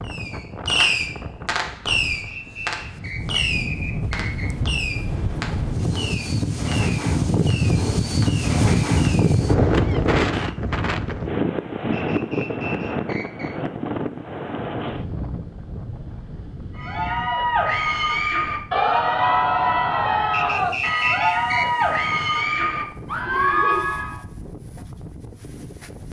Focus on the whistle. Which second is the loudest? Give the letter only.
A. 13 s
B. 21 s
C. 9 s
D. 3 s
B.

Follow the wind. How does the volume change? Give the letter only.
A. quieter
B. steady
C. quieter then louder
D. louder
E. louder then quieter
E.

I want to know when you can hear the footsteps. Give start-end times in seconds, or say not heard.
not heard.